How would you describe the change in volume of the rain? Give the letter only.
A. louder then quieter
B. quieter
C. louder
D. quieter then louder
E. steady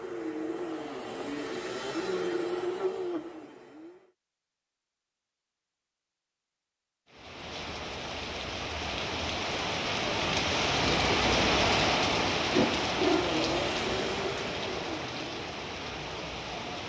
A.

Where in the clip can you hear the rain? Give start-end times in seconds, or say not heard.
7.1-16.8.